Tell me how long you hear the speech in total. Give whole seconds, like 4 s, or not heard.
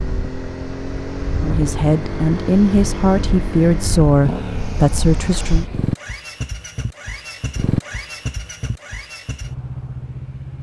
4 s.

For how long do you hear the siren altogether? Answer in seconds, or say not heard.
not heard.